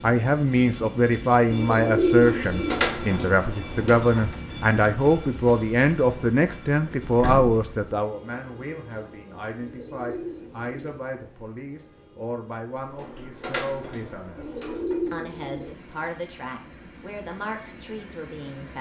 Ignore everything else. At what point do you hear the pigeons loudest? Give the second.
2 s.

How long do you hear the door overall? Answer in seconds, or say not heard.
5 s.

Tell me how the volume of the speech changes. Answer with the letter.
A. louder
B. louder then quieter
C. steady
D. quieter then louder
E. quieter
E.